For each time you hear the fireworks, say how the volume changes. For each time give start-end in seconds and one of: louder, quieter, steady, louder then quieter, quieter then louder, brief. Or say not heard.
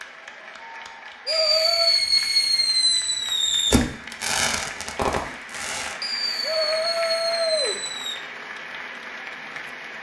1.2-8.2 quieter.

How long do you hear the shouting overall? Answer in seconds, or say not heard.
2 s.